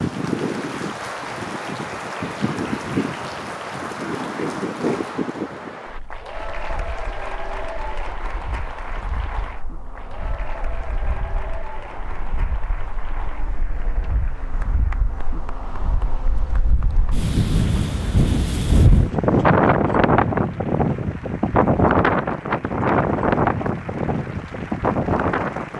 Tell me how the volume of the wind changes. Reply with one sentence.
The volume of the wind goes down, then up.